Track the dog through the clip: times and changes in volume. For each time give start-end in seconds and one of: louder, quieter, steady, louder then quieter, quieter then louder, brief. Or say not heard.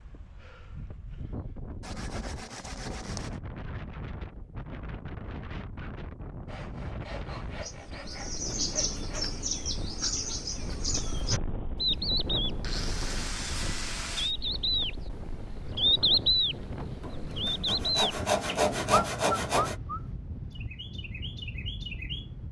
not heard.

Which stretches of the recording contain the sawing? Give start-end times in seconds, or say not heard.
1.8-3.4, 6.5-9.2, 12.6-14.3, 17.0-19.8.